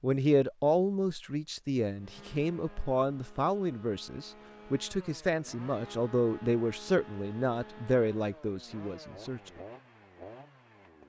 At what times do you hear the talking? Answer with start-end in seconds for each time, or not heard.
0.0-9.5.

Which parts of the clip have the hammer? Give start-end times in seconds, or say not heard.
not heard.